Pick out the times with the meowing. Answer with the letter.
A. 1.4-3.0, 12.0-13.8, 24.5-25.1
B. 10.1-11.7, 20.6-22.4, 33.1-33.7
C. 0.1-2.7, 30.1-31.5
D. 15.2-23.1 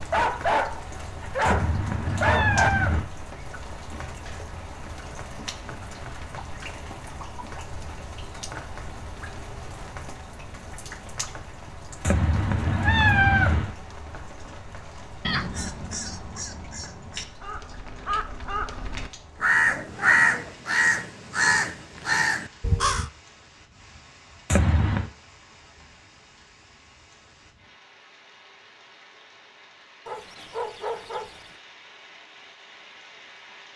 A.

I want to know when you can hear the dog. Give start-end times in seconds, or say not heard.
0.1-2.7, 30.1-31.5.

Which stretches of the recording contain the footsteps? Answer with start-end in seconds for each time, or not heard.
not heard.